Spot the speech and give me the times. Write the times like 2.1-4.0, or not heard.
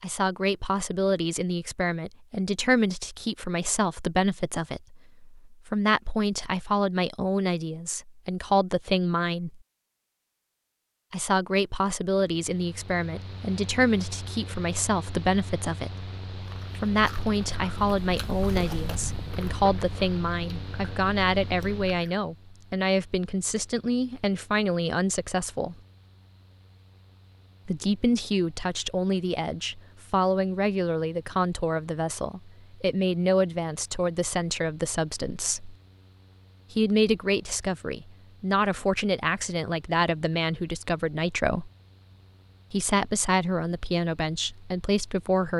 0.0-9.6, 11.1-25.8, 27.6-35.8, 36.7-41.7, 42.7-45.5.